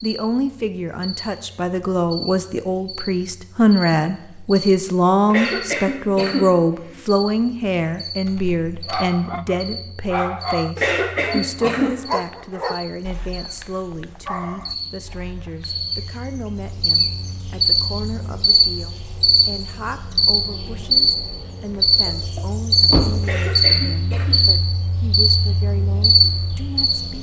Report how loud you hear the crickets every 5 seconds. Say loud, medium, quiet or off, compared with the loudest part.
quiet, quiet, quiet, loud, loud, loud.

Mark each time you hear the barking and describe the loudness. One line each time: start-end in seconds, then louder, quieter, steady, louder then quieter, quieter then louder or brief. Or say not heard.
8.8-15.8 quieter then louder.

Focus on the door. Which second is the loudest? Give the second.
23 s.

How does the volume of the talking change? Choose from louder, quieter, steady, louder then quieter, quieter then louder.
quieter.